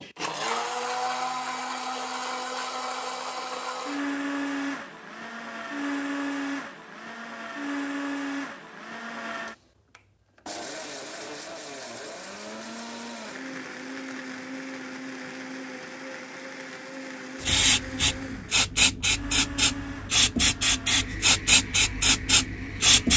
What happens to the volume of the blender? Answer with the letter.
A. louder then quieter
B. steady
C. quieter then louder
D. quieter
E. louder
D.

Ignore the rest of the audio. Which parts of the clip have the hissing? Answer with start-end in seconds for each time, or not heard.
17.4-23.1.